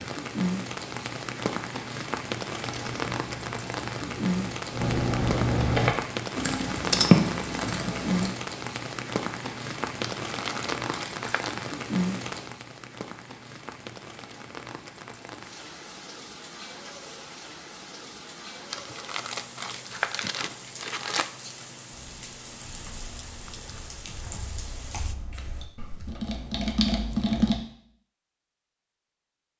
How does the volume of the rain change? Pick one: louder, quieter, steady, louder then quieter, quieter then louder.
quieter.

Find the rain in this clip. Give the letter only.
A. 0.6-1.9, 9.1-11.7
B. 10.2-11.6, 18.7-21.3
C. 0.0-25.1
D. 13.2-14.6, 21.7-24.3
C.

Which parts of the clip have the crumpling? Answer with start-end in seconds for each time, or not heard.
10.2-11.6, 18.7-21.3.